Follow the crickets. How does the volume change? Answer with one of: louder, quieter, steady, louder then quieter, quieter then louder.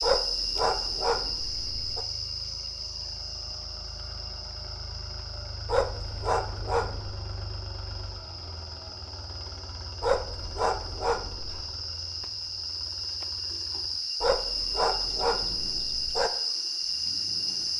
quieter then louder.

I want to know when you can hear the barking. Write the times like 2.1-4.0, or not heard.
0.0-2.0, 5.7-7.2, 10.0-11.7, 14.2-16.3.